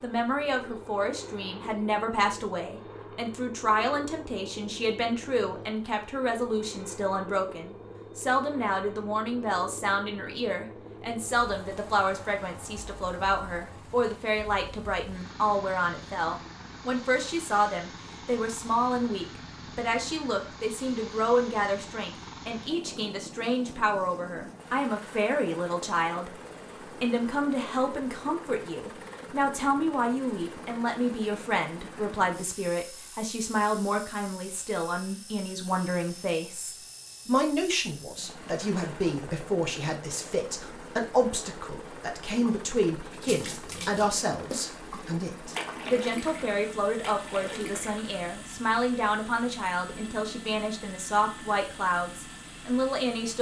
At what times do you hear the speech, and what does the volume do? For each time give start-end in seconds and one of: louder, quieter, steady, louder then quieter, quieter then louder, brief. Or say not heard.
0.0-26.3 steady
27.0-53.3 steady.